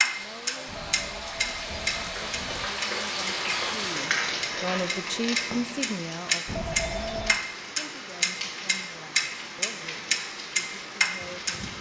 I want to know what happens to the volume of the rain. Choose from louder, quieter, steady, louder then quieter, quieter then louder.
louder then quieter.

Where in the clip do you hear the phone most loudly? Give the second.
7 s.